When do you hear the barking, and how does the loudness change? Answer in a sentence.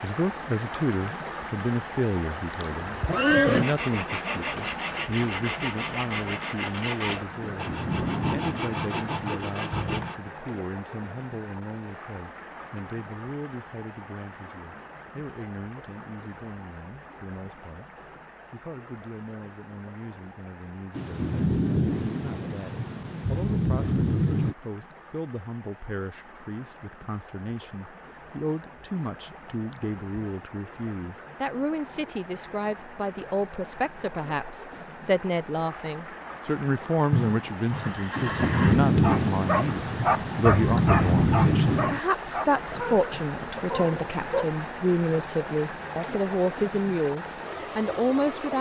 You can hear the barking from 38.9 to 44.5 s, getting quieter.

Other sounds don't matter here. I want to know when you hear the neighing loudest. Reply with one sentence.
The volume of the neighing peaks at 3 seconds.